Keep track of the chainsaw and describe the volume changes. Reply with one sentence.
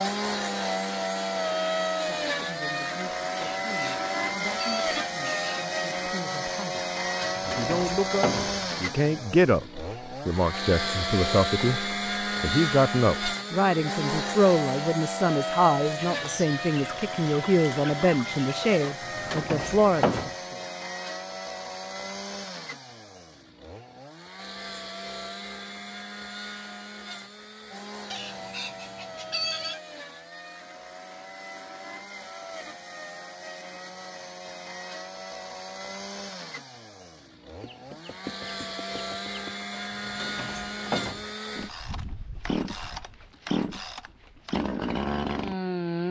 The loudness of the chainsaw goes down, then up.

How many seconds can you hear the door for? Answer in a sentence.
You can hear the door for 5 seconds altogether.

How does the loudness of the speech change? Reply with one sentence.
The volume of the speech goes up.